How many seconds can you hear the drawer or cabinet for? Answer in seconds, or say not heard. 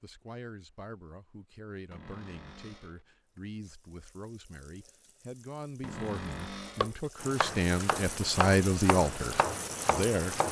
2 s.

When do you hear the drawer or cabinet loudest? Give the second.
6 s.